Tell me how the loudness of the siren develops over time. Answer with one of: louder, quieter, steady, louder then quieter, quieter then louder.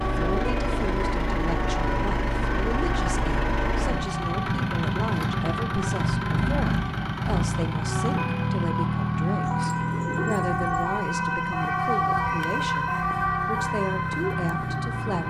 louder.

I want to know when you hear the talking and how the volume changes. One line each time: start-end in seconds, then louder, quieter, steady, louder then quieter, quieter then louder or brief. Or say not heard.
0.1-15.2 steady.